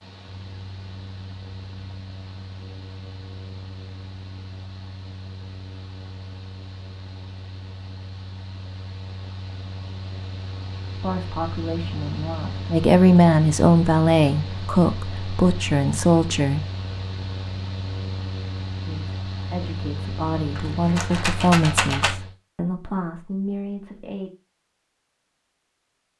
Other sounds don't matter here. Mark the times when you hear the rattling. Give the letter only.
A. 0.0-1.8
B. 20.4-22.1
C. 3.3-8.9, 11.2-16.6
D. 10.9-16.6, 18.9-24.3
B.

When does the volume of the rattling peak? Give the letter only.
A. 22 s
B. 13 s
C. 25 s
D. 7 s
A.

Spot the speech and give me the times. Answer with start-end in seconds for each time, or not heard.
10.9-16.6, 18.9-24.3.